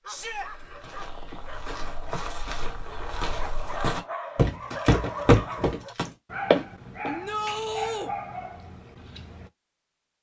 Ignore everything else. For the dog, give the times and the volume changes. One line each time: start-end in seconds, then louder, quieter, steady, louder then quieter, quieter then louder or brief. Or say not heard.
0.0-9.5 louder.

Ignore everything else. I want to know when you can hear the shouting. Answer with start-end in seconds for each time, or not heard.
0.1-0.5, 7.0-8.1.